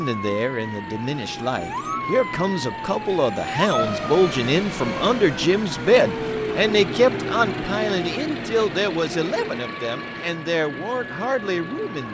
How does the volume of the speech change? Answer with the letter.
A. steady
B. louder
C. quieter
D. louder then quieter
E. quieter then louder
D.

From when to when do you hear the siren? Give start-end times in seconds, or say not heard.
0.0-12.0.